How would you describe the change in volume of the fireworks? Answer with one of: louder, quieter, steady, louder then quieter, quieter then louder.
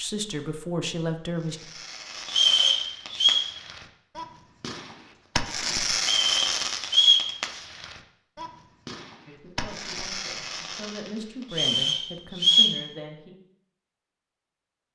louder then quieter.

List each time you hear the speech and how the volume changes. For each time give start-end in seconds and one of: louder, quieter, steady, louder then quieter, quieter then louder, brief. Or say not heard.
0.0-1.6 brief
9.2-13.3 louder.